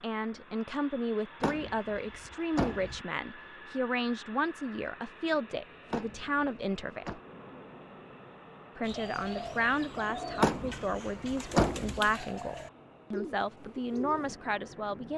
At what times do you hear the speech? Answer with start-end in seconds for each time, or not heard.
0.0-7.2, 8.8-15.1.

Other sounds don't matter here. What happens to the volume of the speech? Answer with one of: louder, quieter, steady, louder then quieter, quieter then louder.
steady.